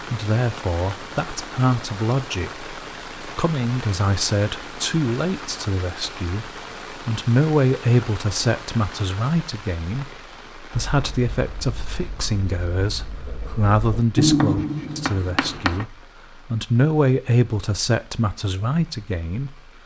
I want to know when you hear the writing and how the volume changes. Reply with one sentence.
You can hear the writing from 10.7 to 15.8 s, getting louder then quieter.